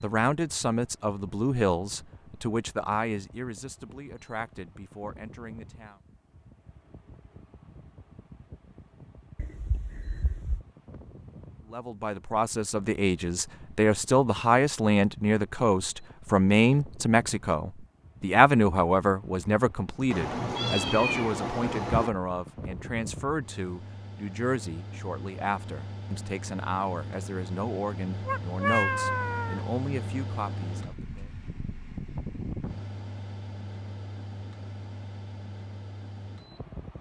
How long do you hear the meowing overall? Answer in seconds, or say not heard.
5 s.